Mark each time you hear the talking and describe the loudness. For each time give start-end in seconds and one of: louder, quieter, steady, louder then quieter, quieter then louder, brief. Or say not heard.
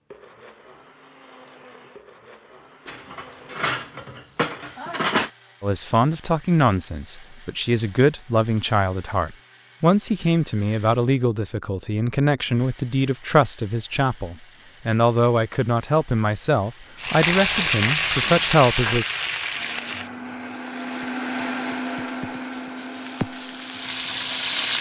5.6-19.1 steady.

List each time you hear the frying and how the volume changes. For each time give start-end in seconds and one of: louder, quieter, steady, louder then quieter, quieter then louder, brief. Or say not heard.
16.9-24.7 quieter then louder.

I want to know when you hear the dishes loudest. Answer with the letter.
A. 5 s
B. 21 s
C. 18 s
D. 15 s
A.